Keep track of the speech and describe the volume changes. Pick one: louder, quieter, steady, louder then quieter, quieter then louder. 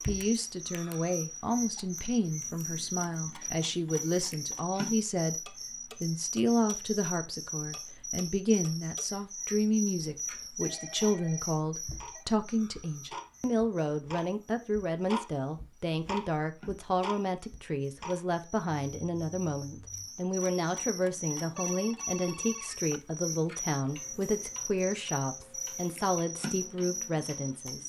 steady.